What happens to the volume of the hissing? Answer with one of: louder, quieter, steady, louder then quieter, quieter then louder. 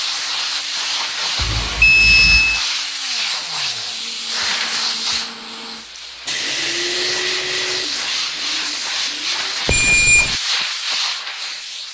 steady.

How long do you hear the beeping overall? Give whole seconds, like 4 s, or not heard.
2 s.